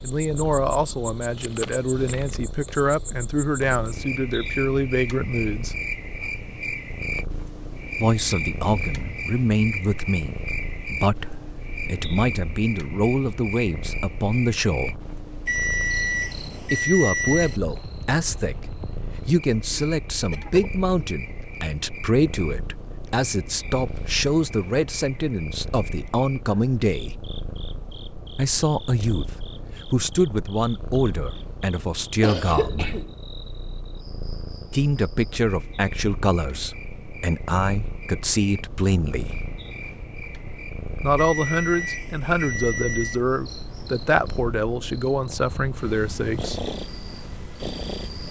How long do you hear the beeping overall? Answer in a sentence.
You can hear the beeping for 4 seconds altogether.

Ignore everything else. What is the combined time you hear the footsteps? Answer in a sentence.
The footsteps can't be heard in this clip.